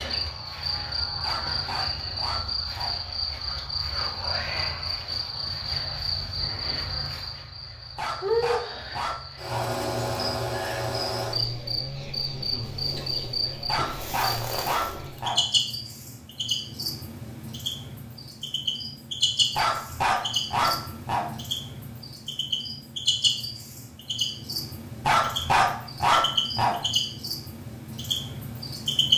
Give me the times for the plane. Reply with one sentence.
The plane can't be heard in this clip.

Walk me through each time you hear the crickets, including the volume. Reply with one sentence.
You can hear the crickets from 0.0 to 29.1 s, at a steady volume.